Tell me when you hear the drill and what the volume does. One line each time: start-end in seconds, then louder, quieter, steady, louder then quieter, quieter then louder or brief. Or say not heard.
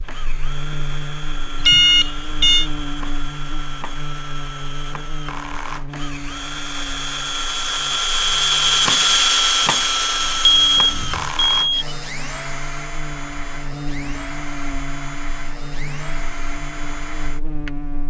0.0-18.0 louder then quieter.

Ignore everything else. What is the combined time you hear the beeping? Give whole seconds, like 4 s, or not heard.
2 s.